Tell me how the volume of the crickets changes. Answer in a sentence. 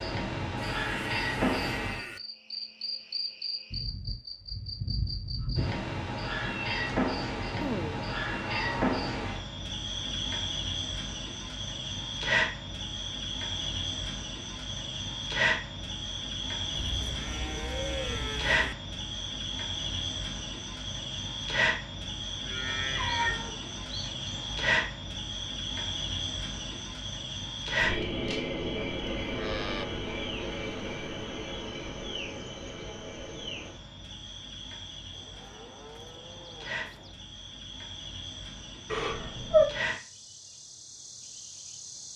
The volume of the crickets goes down.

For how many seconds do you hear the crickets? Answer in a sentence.
You can hear the crickets for 42 seconds altogether.